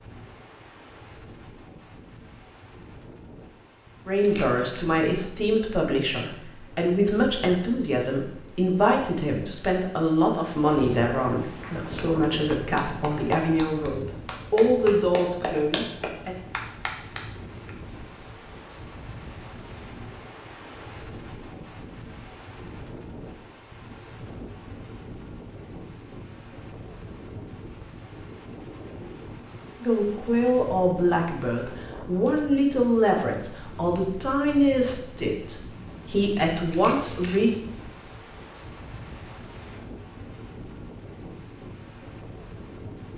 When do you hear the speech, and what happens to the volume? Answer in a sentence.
The speech can be heard from 4.0 to 16.4 s, at a steady volume; and from 29.8 to 37.5 s, at a steady volume.